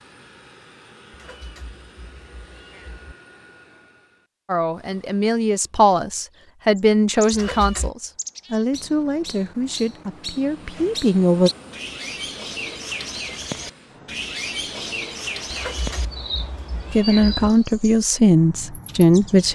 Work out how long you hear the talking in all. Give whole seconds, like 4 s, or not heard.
10 s.